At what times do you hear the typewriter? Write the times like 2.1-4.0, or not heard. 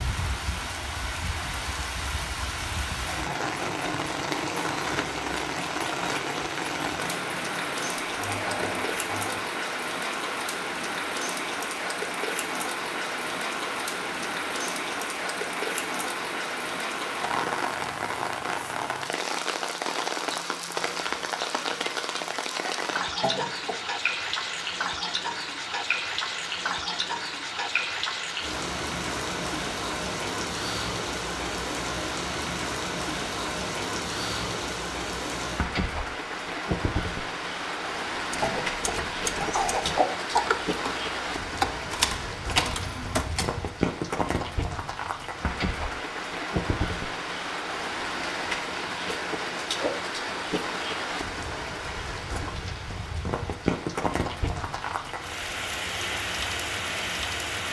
38.3-43.5.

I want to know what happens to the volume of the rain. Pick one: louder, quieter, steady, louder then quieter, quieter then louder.
steady.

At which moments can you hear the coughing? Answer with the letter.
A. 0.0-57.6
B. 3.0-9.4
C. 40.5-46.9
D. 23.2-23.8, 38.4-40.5
D.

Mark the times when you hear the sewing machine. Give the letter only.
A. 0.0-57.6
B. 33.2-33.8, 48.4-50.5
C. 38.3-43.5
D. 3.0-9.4
D.